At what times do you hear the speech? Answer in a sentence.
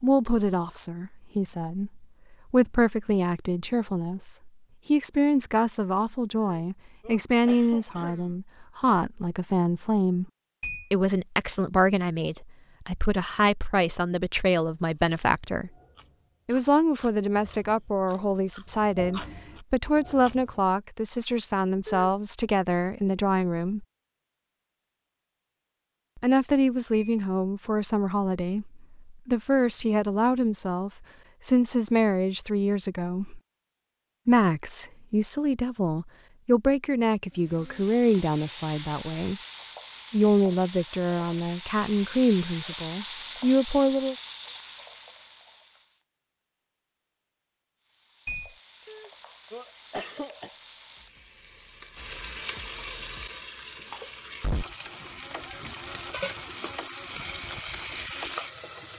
The speech can be heard from 0.0 to 10.3 s, from 10.9 to 15.7 s, from 16.4 to 23.9 s, from 26.1 to 33.4 s, from 34.2 to 39.4 s and from 40.1 to 44.1 s.